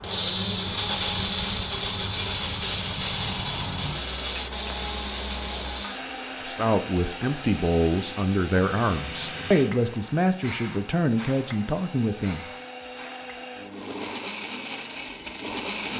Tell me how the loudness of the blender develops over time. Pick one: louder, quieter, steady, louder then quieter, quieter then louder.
quieter then louder.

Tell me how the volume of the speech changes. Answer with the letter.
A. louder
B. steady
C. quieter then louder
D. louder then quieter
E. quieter
B.